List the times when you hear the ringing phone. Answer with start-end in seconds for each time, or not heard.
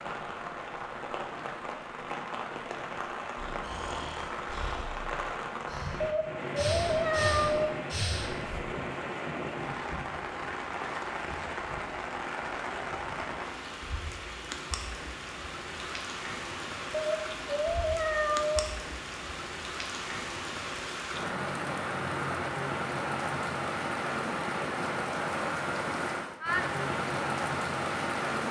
not heard.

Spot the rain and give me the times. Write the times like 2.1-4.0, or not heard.
0.0-28.4.